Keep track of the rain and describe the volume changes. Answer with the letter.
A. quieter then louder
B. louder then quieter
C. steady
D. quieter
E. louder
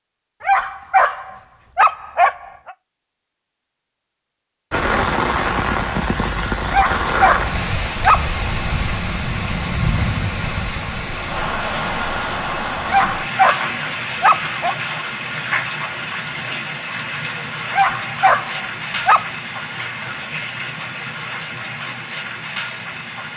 D.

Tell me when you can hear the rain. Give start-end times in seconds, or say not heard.
4.7-23.3.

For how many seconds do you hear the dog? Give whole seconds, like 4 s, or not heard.
7 s.